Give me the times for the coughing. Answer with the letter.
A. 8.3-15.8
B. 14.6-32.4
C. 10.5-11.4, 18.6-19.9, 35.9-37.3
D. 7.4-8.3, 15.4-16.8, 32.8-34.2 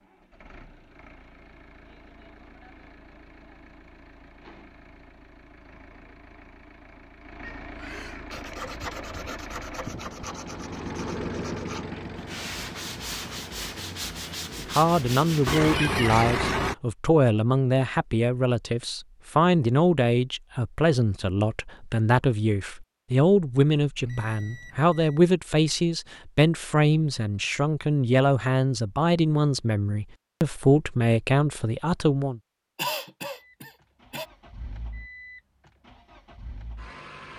D.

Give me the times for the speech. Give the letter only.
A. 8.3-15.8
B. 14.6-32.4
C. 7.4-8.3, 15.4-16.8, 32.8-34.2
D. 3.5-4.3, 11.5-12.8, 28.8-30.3
B.